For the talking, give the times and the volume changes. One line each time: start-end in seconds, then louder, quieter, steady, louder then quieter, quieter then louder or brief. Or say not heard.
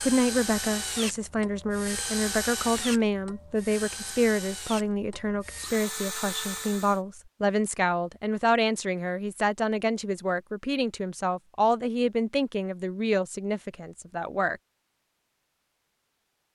0.0-14.6 steady.